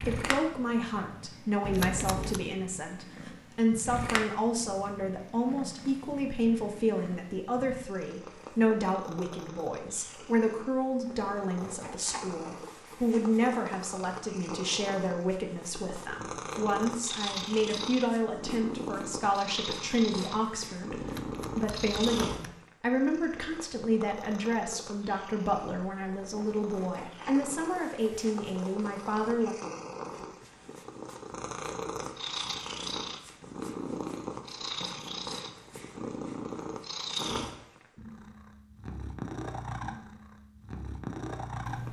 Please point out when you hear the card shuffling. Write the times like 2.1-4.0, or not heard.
1.6-2.4, 20.9-22.6.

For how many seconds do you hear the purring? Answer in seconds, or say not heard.
42 s.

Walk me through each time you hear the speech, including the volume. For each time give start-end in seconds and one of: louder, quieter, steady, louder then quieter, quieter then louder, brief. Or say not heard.
0.0-29.6 steady.